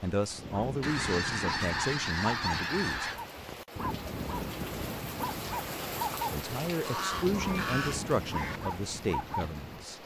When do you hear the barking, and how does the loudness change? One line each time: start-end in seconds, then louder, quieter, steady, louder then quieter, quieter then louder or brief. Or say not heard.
0.2-10.0 steady.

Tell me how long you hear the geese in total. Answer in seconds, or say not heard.
4 s.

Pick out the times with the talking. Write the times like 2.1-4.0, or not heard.
0.0-3.1, 6.3-10.0.